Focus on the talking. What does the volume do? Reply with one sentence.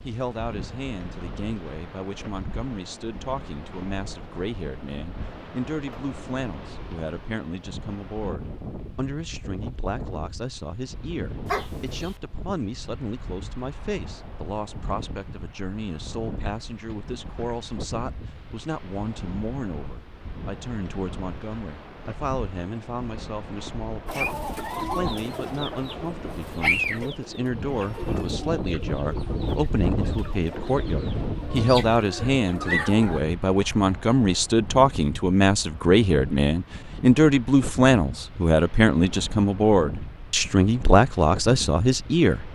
The loudness of the talking goes up.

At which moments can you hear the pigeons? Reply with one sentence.
The pigeons can be heard from 24.1 to 33.2 s.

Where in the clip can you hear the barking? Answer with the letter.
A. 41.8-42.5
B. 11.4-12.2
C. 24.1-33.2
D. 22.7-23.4
B.